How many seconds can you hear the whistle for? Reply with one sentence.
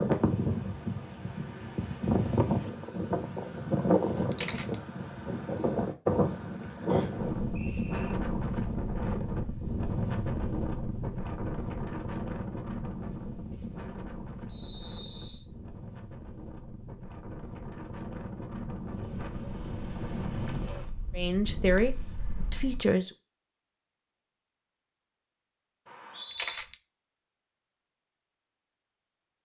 You can hear the whistle for 3 seconds altogether.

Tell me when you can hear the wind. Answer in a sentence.
You can hear the wind from 0.0 to 22.9 s.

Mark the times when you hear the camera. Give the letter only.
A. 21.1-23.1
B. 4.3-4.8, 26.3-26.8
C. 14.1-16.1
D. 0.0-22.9
B.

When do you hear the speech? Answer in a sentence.
You can hear the speech from 21.1 to 23.1 s.